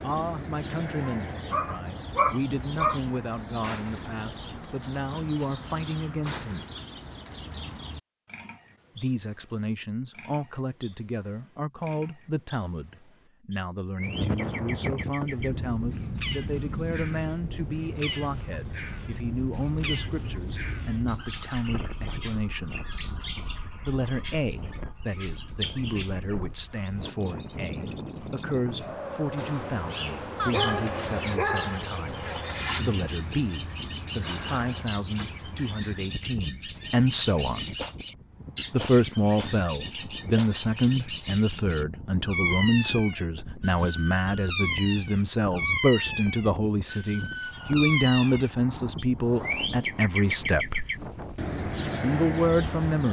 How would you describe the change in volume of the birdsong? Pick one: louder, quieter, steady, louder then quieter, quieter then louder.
louder.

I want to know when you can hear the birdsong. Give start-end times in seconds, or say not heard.
0.0-53.0.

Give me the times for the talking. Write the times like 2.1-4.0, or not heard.
0.0-6.7, 8.9-22.8, 23.8-37.6, 38.7-50.9, 51.9-53.0.